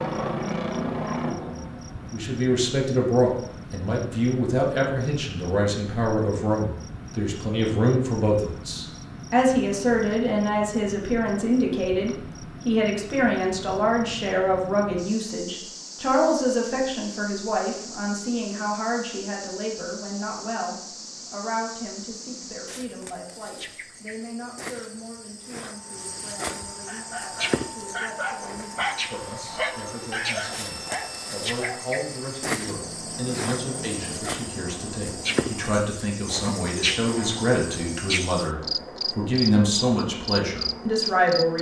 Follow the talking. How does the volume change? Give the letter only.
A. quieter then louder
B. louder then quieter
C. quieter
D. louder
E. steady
A.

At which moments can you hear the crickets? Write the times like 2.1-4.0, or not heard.
0.0-41.5.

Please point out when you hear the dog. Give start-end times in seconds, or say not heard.
26.9-31.9.